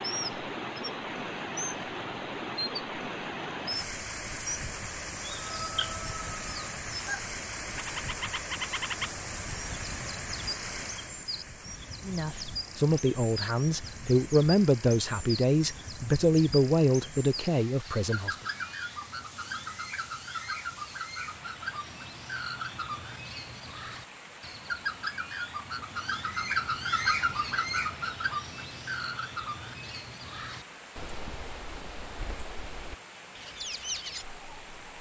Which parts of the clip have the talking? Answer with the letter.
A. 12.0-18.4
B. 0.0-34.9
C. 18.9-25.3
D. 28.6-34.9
A.